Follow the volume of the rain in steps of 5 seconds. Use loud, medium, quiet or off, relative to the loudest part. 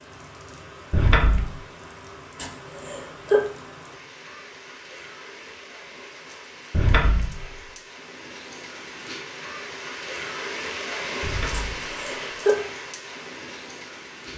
medium, medium, loud.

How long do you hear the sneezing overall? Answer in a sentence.
You can hear the sneezing for 2 seconds altogether.